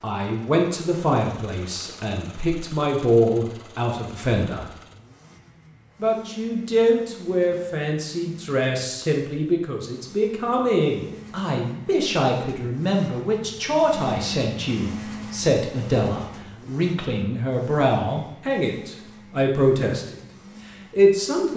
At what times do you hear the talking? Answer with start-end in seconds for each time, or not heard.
0.0-4.7, 6.0-20.2, 20.9-21.5.